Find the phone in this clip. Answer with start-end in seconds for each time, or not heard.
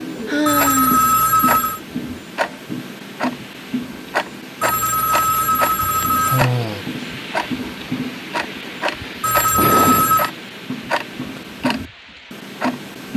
0.5-1.8, 4.6-6.5, 9.2-10.3.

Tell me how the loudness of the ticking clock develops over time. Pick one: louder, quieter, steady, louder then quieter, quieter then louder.
steady.